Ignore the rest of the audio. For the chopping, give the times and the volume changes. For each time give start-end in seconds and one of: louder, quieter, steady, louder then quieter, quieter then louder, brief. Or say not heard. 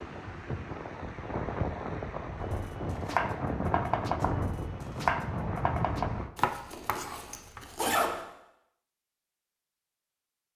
2.4-7.7 steady.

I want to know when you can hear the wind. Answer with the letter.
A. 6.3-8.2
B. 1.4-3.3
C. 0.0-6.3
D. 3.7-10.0
C.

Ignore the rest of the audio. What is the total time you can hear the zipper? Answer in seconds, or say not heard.
2 s.